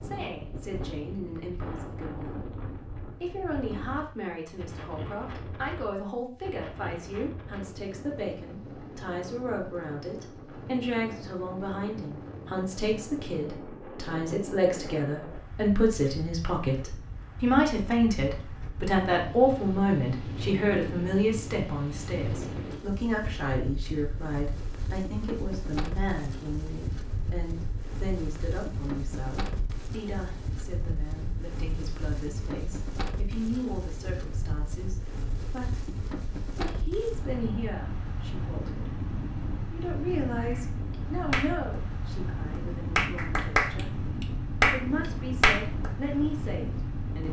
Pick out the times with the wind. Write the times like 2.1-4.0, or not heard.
0.0-47.2.